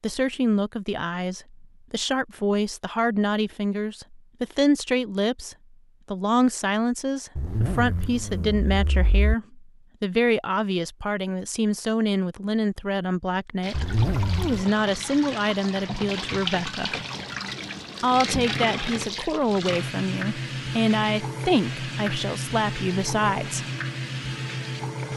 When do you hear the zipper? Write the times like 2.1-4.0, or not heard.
7.3-9.3, 13.7-14.7.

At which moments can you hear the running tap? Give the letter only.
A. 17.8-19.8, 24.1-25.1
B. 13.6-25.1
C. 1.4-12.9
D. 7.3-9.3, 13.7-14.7
B.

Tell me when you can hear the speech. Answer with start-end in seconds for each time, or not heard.
0.0-16.9, 18.0-23.6.